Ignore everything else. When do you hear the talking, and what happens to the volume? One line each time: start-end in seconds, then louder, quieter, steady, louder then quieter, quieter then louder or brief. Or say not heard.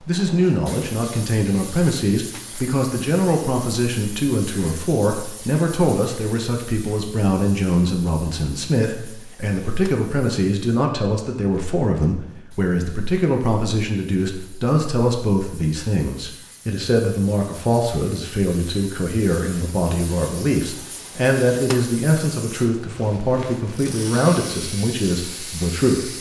0.0-26.1 steady.